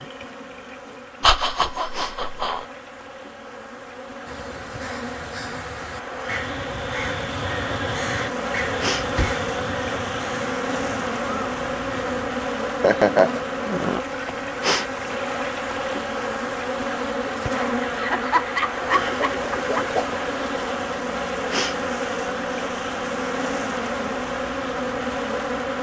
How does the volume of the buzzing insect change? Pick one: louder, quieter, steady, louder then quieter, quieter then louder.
louder.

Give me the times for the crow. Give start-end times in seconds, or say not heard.
4.2-12.2.